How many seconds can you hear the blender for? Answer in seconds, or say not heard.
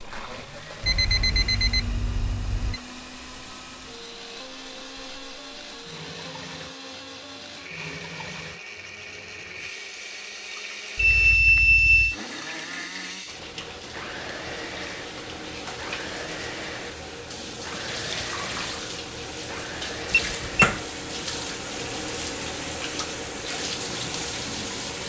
25 s.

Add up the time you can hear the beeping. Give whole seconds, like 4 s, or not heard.
4 s.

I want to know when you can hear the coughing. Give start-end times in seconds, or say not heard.
not heard.